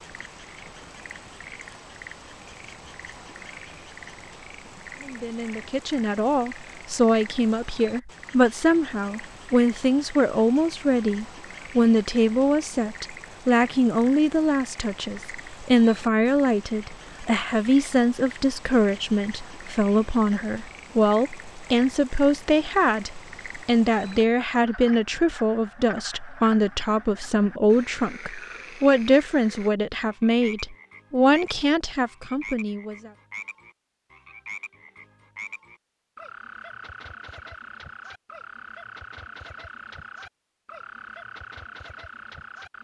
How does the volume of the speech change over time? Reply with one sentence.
The loudness of the speech stays about the same.